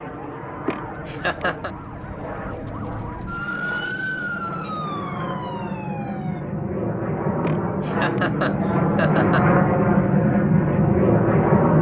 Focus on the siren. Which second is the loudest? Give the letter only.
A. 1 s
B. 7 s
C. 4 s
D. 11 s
C.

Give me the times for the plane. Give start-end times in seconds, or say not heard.
0.0-11.7.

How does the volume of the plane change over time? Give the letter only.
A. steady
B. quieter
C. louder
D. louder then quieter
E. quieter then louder
C.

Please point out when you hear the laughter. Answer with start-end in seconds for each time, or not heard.
0.7-1.7, 7.4-9.4.